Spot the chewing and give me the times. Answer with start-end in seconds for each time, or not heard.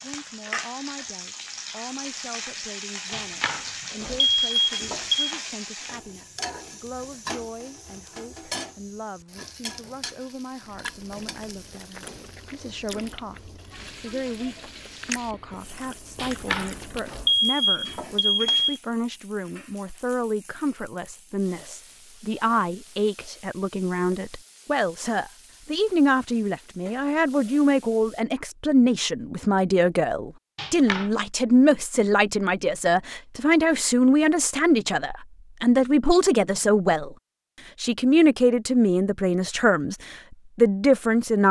10.6-17.4.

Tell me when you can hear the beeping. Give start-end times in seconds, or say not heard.
3.1-5.3, 16.1-18.8, 30.6-31.1.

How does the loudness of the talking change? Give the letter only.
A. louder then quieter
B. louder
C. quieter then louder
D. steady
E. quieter
B.